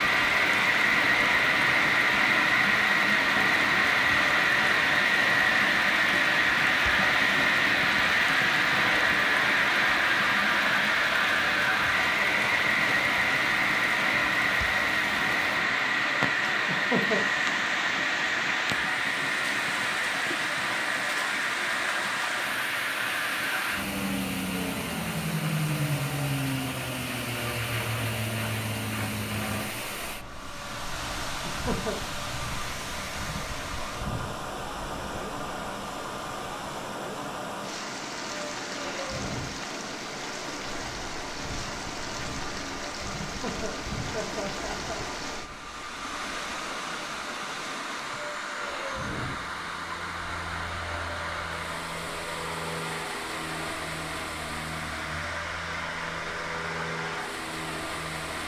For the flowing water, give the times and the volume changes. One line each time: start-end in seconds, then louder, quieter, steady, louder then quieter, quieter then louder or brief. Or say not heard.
0.0-58.4 steady.